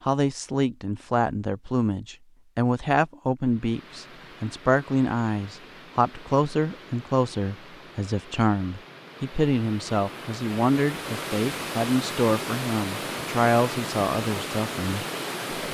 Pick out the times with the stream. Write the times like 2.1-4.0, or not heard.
3.4-15.6.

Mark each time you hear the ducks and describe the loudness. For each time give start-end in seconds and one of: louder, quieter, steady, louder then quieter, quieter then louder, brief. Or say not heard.
not heard.